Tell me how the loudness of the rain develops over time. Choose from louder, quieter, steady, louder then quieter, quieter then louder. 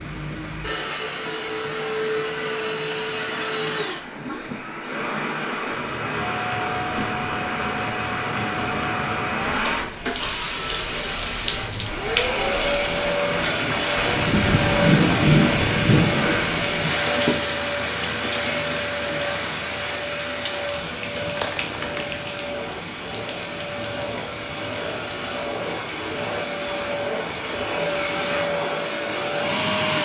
louder then quieter.